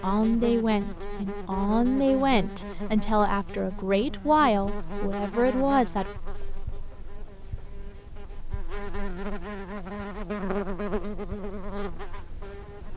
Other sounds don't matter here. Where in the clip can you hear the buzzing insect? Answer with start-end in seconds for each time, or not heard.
0.0-12.9.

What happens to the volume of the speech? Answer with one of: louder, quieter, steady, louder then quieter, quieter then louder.
steady.